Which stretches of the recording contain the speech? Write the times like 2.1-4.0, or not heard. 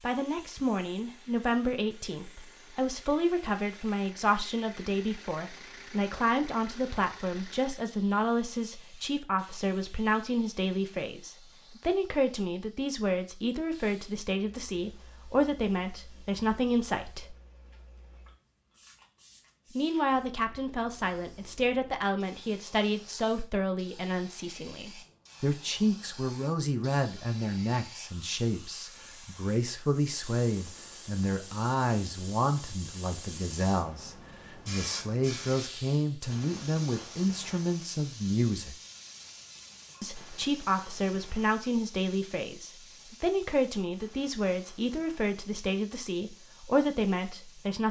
0.0-17.4, 19.8-38.8, 40.0-47.8.